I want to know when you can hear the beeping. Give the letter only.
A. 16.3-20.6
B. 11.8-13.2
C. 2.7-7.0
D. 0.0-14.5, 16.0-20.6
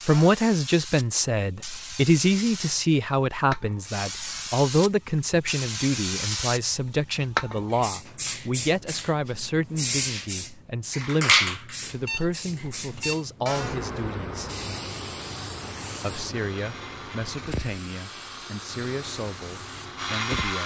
B.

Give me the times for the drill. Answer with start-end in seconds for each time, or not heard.
16.3-20.6.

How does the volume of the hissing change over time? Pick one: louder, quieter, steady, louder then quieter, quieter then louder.
louder then quieter.